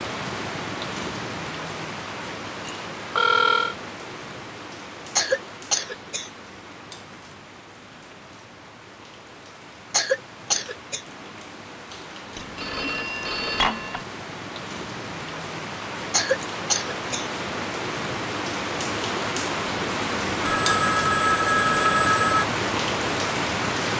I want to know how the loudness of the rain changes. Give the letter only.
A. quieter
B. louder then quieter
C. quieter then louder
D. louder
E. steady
C.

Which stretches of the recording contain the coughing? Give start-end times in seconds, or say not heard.
5.2-6.3, 9.9-11.0, 16.1-17.3.